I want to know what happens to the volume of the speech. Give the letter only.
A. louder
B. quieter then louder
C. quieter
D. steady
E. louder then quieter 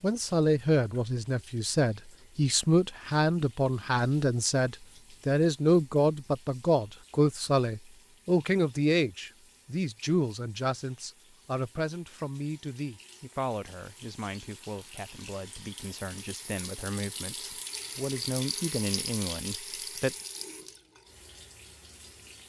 C.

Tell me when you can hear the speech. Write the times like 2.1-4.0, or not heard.
0.0-20.1.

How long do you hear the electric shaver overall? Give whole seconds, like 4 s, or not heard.
not heard.